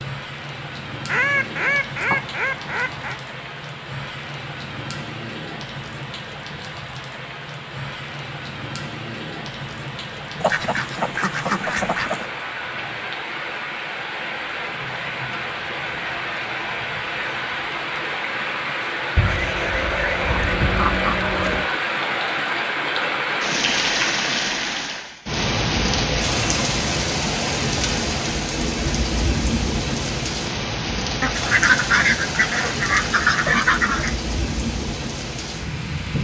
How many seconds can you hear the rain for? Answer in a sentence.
You can hear the rain for 36 seconds altogether.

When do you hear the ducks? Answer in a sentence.
You can hear the ducks from 1.1 to 3.2 s, from 10.4 to 12.3 s, from 19.1 to 21.7 s and from 31.2 to 34.1 s.